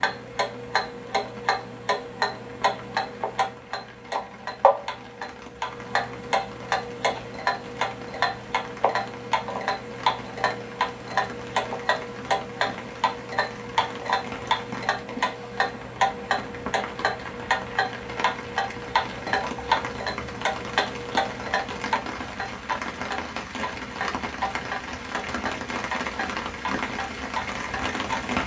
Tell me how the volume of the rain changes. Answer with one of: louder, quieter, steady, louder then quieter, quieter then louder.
louder.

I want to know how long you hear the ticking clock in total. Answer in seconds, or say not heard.
28 s.